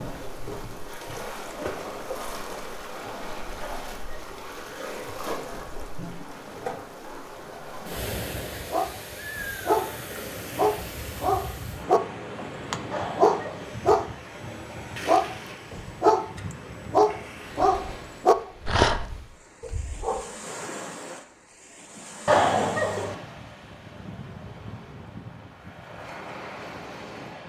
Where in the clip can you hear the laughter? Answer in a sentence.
The laughter can be heard from 3.6 to 4.5 s, from 12.9 to 13.8 s and from 22.2 to 23.1 s.